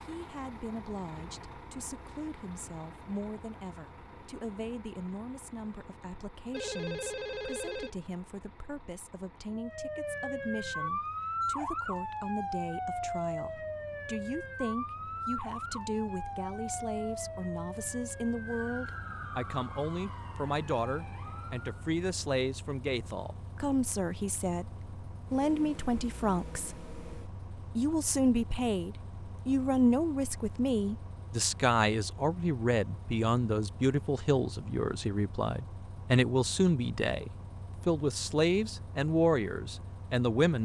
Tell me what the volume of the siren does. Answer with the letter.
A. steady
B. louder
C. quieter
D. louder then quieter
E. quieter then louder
C.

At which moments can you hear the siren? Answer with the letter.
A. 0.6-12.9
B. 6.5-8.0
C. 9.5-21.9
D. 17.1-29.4
C.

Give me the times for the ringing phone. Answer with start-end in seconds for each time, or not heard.
6.5-8.0.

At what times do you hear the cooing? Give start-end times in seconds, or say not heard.
not heard.